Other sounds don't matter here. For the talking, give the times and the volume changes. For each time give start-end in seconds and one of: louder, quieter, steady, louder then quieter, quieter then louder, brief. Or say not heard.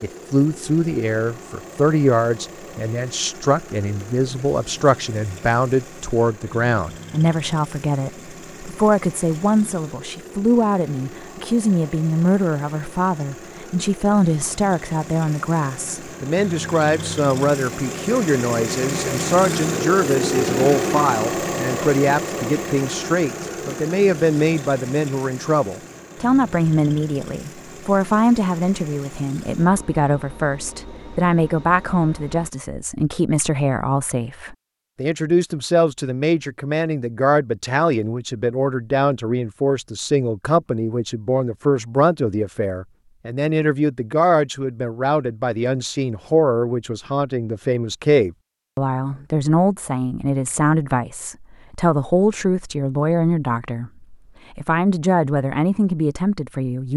0.0-56.9 steady.